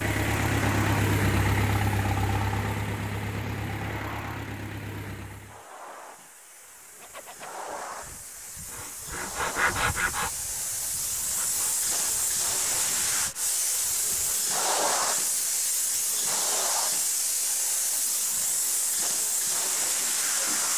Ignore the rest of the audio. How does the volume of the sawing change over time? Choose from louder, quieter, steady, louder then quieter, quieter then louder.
louder then quieter.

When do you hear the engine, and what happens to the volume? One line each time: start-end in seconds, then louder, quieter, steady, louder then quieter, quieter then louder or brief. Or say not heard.
0.0-5.6 quieter.